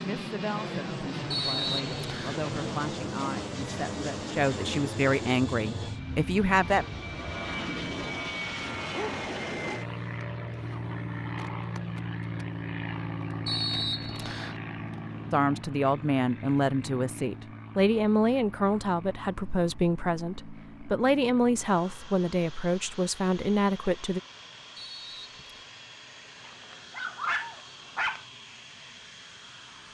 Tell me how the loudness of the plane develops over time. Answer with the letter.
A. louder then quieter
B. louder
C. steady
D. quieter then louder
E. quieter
E.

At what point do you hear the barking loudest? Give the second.
27 s.